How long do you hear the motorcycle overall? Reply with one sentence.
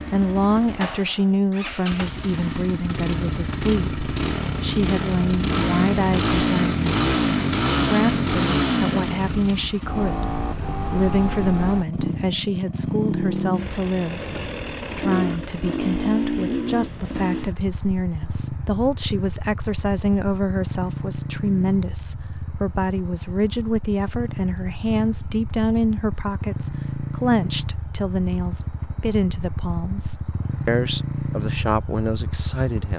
The motorcycle can be heard for 33 seconds in total.